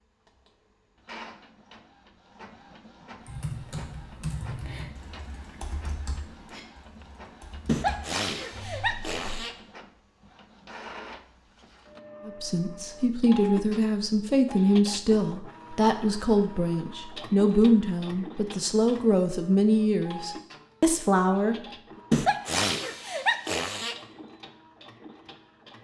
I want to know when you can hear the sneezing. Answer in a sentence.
The sneezing can be heard from 7.7 to 9.6 s and from 22.1 to 23.9 s.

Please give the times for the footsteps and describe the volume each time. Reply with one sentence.
You can't hear the footsteps here.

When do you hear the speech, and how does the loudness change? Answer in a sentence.
You can hear the speech from 12.2 to 21.6 s, at a steady volume.